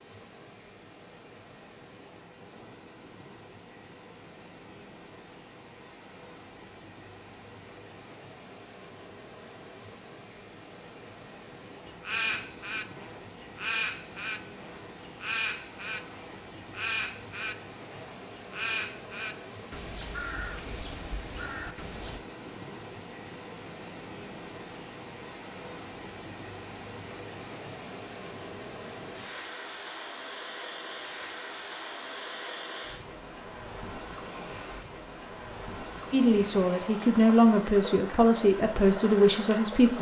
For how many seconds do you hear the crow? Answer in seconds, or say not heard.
10 s.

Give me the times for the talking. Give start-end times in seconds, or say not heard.
36.1-39.9.